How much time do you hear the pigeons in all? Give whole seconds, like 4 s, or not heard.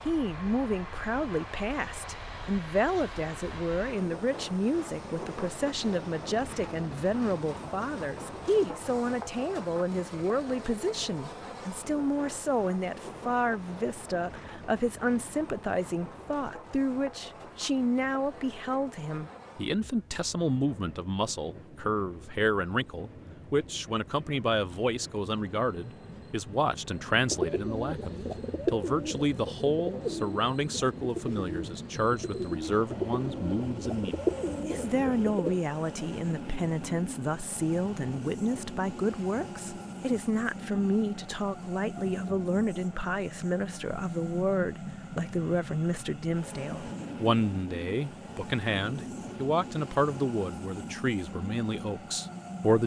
8 s.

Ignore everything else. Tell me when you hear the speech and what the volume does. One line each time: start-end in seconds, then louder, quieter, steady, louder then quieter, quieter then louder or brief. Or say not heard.
0.1-52.8 steady.